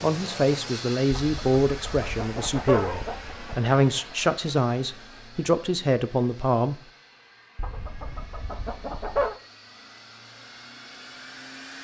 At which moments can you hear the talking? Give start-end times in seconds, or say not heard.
0.0-6.8.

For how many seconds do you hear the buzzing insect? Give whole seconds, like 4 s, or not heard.
not heard.